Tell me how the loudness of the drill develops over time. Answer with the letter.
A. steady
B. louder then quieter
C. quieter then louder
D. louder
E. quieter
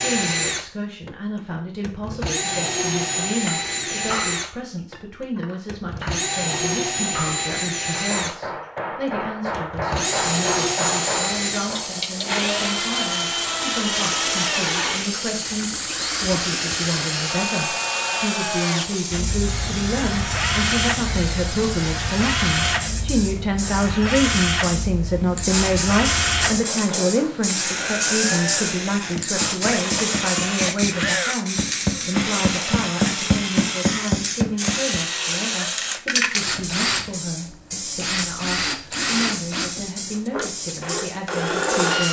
A.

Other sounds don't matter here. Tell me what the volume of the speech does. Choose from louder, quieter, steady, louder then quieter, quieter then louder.
louder then quieter.